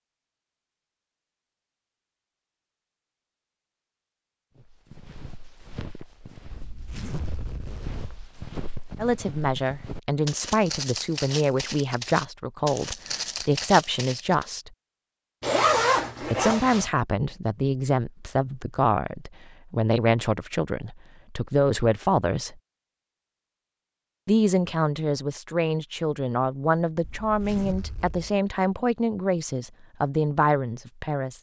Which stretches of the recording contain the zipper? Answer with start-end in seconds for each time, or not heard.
6.5-8.2, 15.4-16.9, 27.0-28.4.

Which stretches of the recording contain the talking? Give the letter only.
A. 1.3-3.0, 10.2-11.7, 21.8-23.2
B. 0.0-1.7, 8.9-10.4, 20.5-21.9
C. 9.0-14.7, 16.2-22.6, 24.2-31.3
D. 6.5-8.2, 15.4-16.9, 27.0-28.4
C.